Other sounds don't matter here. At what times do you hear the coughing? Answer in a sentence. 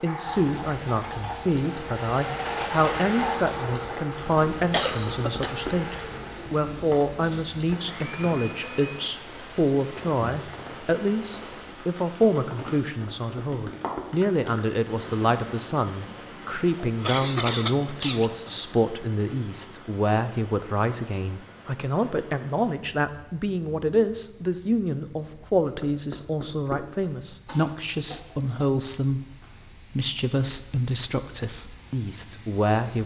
You can hear the coughing from 4.2 to 5.6 s, from 16.8 to 18.4 s and from 27.4 to 28.6 s.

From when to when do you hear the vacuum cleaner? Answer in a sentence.
The vacuum cleaner can be heard from 0.0 to 8.9 s.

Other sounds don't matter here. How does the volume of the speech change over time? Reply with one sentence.
The volume of the speech stays about the same.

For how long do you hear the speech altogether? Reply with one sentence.
You can hear the speech for 33 seconds altogether.